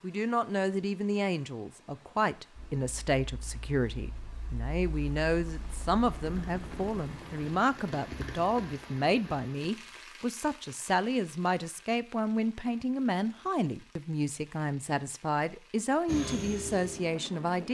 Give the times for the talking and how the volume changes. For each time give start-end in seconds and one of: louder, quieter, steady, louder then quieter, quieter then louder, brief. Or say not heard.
0.0-17.6 steady.